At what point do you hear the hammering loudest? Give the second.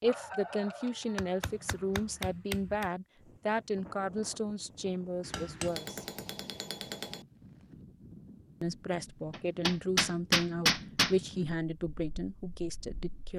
11 s.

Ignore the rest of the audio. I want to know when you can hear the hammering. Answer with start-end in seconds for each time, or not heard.
1.1-2.9, 5.2-7.2, 9.3-11.2.